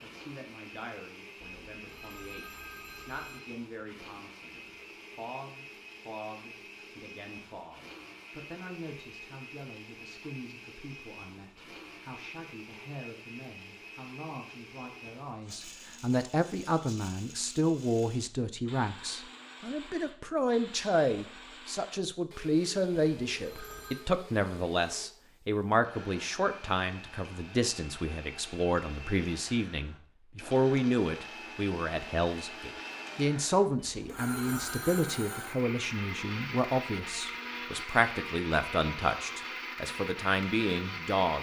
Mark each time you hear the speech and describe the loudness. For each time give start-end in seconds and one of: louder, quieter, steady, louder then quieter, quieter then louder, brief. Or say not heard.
0.0-41.3 louder.